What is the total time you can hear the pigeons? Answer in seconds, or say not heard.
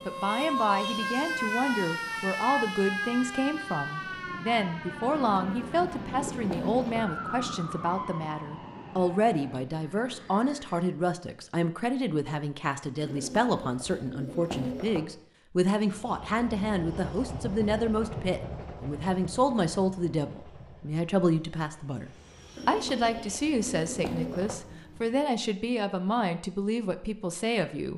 6 s.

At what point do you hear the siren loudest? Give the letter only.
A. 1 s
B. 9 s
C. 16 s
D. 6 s
A.